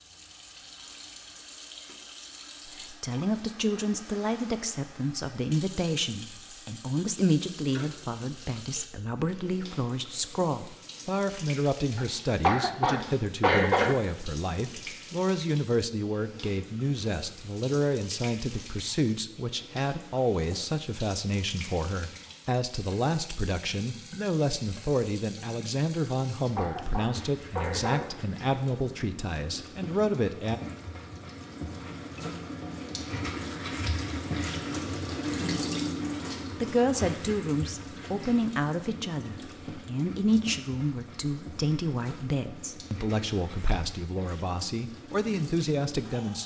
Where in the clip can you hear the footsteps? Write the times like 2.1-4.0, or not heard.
not heard.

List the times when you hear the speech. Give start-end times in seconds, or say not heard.
2.8-30.6, 36.6-46.4.